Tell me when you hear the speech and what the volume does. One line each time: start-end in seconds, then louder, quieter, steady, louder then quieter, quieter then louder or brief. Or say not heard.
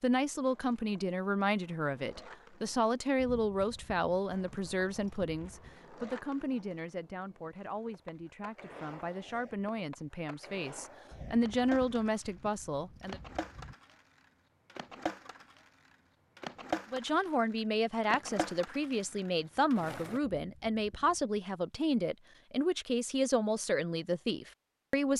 0.0-13.2 quieter then louder
16.9-25.1 steady.